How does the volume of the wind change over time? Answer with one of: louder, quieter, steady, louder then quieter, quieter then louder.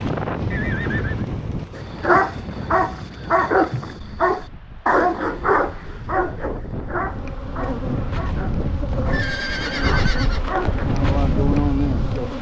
quieter then louder.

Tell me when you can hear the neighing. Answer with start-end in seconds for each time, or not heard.
0.5-1.2, 9.1-10.6.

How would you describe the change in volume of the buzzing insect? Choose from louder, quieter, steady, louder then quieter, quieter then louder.
louder.